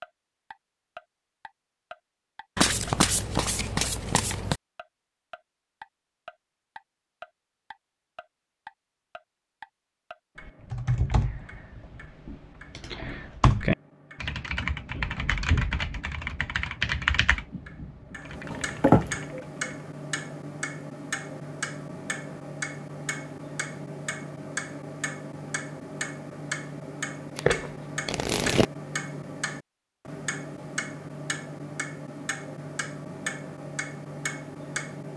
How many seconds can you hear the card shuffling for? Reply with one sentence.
You can hear the card shuffling for 4 seconds altogether.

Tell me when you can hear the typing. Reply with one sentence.
The typing can be heard from 10.4 to 19.6 s.